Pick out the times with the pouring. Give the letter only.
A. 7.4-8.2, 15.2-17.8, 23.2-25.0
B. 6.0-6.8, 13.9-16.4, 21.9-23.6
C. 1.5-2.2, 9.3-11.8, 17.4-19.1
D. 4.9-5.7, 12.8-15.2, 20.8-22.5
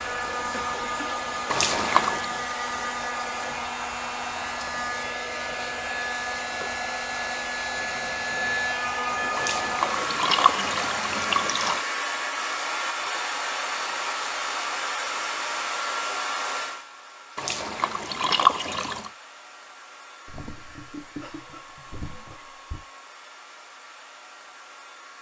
C.